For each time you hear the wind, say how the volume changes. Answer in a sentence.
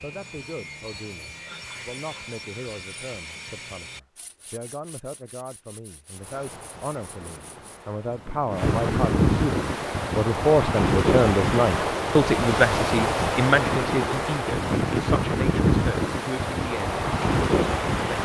You can hear the wind from 6.1 to 18.1 s, getting louder.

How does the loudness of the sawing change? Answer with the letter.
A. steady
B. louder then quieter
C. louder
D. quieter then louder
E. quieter
E.